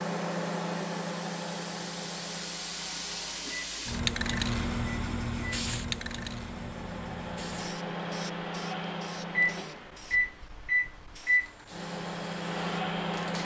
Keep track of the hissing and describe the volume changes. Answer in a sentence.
The loudness of the hissing goes up, then down.